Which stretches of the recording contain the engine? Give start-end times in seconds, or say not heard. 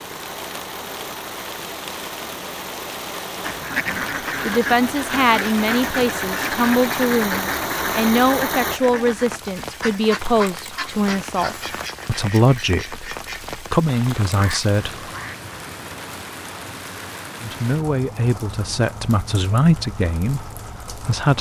0.0-8.8.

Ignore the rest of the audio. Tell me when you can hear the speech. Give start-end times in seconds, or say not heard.
3.9-15.1, 17.4-21.3.